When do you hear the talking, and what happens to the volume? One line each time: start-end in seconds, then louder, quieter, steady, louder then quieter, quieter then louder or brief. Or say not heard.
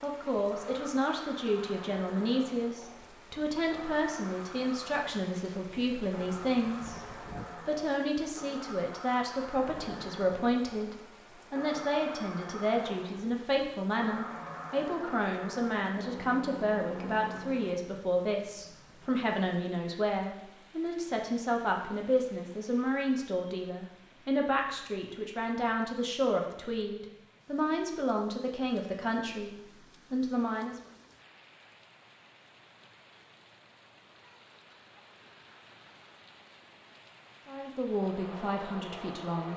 0.0-30.8 steady
37.5-39.5 brief.